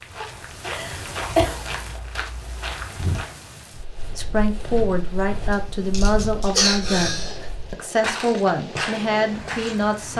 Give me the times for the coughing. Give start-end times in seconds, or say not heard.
0.2-1.7, 5.5-7.5.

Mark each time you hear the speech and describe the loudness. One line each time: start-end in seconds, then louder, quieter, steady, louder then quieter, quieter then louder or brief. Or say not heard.
4.2-10.1 steady.